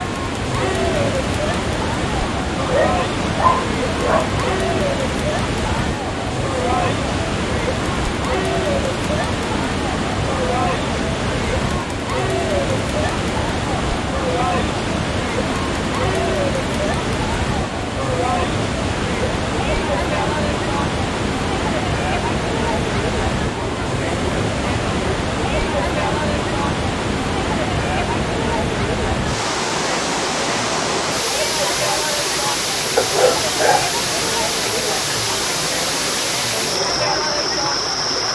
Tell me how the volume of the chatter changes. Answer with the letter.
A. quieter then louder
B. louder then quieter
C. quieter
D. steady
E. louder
D.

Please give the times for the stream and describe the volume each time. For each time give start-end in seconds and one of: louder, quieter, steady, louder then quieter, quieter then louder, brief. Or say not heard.
0.0-38.3 steady.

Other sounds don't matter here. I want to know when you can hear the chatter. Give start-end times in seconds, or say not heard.
0.0-38.3.